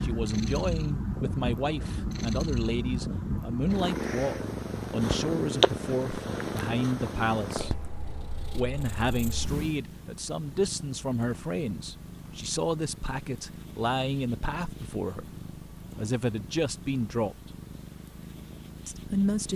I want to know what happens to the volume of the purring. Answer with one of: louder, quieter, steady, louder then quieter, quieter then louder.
quieter.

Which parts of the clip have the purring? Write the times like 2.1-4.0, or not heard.
0.0-19.5.